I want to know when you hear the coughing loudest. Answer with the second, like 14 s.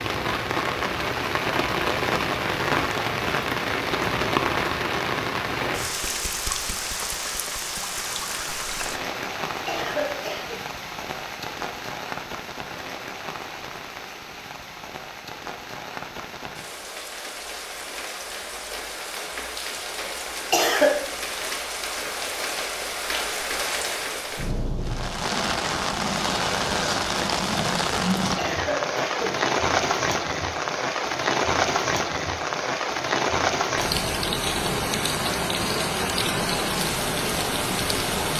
21 s.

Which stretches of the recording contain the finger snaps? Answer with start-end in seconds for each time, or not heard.
not heard.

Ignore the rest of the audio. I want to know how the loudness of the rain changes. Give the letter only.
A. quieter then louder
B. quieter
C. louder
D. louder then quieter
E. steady
A.